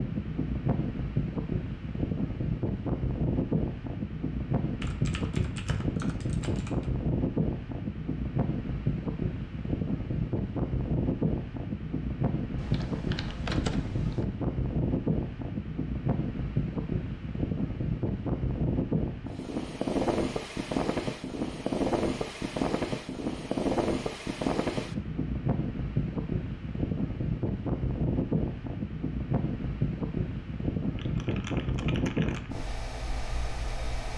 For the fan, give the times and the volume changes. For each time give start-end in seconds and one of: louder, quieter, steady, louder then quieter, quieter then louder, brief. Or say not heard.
0.0-34.1 steady.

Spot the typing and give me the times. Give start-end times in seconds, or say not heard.
4.8-7.0, 12.6-14.2, 30.9-32.5.